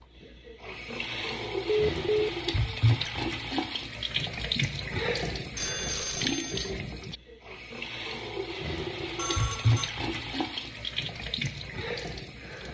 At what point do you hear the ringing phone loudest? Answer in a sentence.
The loudest moment of the ringing phone is at 2 seconds.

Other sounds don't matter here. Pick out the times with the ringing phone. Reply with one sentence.
You can hear the ringing phone from 1.9 to 2.3 s, from 5.5 to 6.7 s and from 9.2 to 9.9 s.